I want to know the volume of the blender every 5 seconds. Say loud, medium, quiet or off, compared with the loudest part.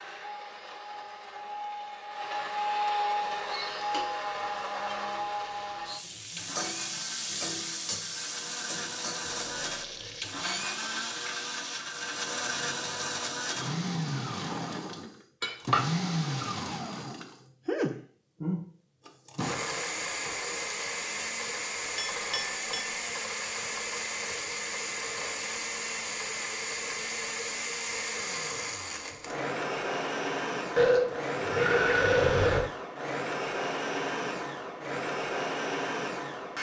loud, medium, loud, loud, loud, loud, loud, loud.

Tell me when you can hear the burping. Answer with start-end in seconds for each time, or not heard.
9.2-10.4, 12.2-13.5, 30.8-32.6.